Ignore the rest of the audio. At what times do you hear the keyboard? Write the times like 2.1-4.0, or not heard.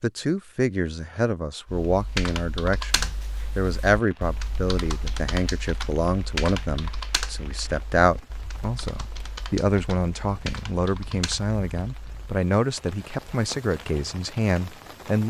1.6-12.3.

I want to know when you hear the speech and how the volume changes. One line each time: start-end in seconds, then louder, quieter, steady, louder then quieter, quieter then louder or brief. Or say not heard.
0.0-15.2 steady.